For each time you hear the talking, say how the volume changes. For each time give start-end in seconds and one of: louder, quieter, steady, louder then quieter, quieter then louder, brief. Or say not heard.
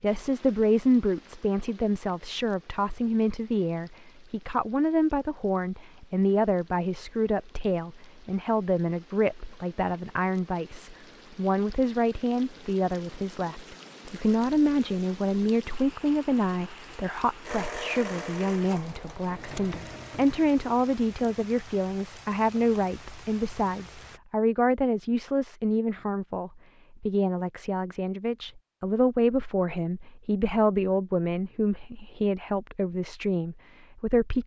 0.0-34.4 steady.